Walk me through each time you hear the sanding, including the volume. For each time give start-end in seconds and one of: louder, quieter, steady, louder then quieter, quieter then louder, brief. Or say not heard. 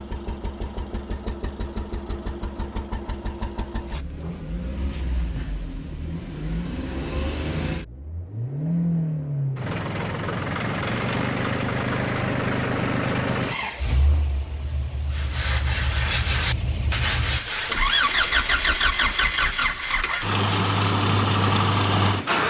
15.1-22.4 quieter.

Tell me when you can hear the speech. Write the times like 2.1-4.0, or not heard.
not heard.